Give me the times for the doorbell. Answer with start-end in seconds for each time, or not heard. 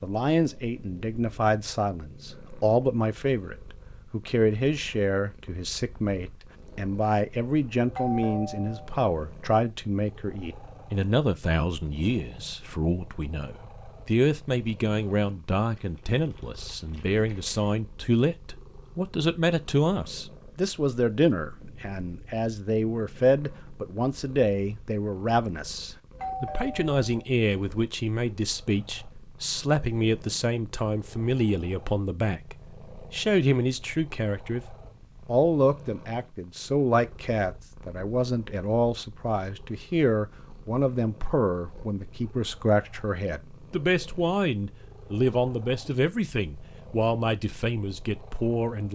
7.8-8.9, 26.1-27.2.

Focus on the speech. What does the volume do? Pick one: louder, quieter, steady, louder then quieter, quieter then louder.
steady.